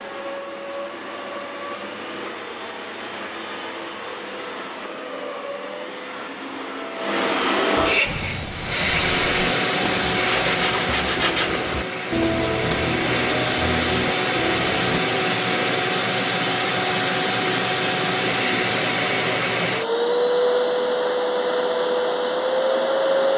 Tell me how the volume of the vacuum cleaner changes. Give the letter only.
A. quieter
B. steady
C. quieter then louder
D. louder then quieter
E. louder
E.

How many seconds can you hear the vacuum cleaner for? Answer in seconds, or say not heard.
23 s.